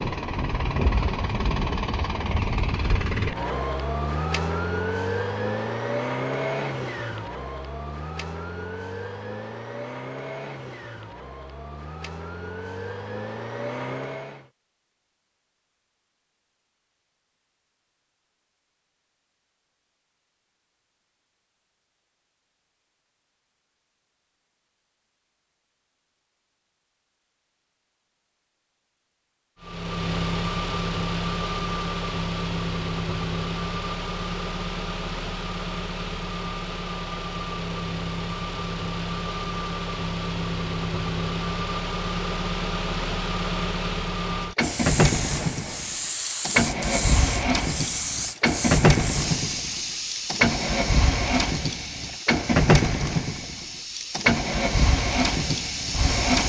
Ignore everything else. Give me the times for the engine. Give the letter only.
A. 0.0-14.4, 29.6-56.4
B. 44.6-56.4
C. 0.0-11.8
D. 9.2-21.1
A.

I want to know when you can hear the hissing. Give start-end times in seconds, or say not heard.
44.6-56.4.